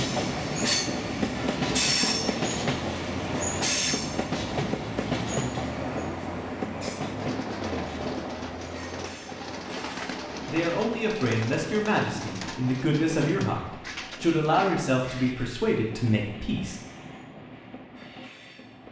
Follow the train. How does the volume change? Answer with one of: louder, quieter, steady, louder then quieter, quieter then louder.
quieter.